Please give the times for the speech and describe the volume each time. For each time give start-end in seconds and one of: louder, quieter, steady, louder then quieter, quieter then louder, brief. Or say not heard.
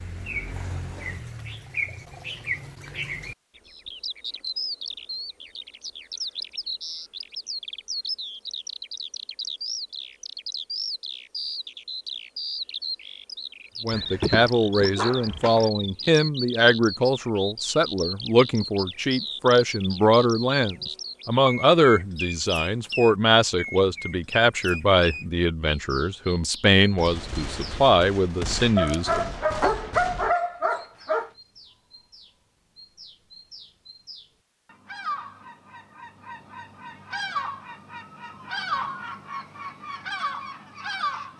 13.8-29.3 steady.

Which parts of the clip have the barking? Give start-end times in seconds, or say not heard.
13.9-15.7, 28.8-31.3.